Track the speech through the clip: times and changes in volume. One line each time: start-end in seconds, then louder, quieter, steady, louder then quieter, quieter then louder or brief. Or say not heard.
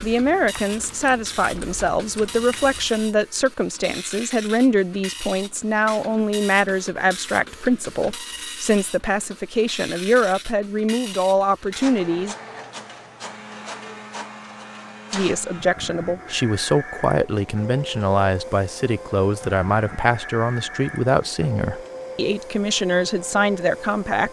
0.0-12.3 steady
15.1-24.2 steady.